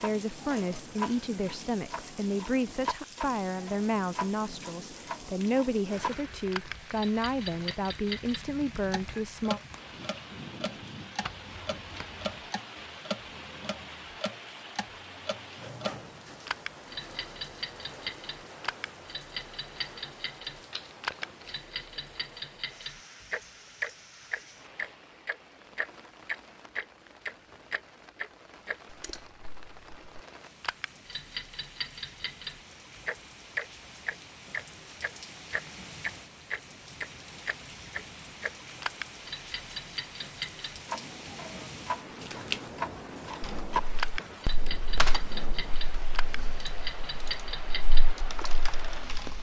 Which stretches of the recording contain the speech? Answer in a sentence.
You can hear the speech from 0.0 to 9.6 s.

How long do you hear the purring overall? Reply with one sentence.
You can't hear the purring here.